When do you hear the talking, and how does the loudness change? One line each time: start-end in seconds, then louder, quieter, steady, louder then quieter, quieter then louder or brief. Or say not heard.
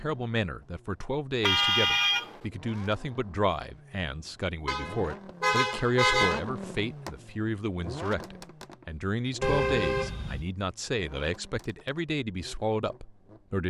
0.0-13.6 steady.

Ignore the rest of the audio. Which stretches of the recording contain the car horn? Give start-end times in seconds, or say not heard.
1.4-2.4, 4.7-6.5, 9.4-10.4.